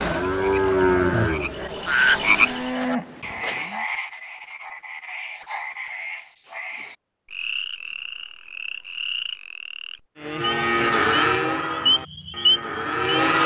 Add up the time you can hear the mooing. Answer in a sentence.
You can hear the mooing for 7 seconds altogether.